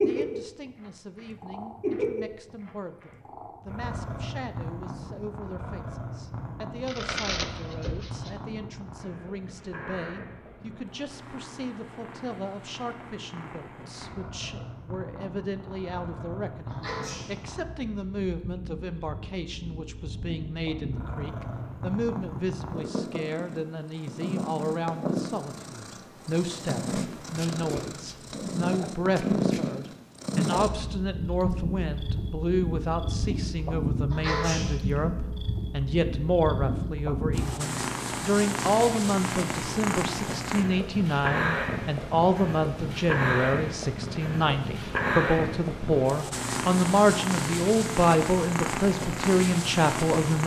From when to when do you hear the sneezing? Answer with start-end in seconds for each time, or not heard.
16.7-17.4, 34.1-34.8.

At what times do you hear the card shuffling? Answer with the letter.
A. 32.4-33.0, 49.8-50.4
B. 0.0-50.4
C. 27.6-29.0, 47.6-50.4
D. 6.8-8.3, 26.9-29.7
D.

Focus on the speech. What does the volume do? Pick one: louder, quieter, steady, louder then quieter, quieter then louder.
louder.